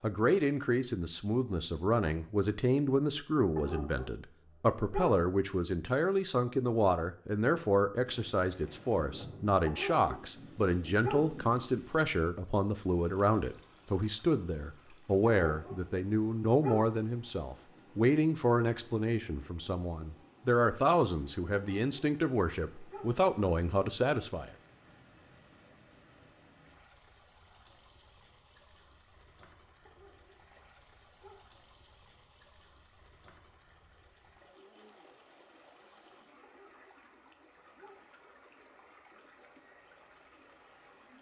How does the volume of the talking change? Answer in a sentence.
The volume of the talking stays about the same.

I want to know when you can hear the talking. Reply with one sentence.
You can hear the talking from 0.0 to 24.5 s.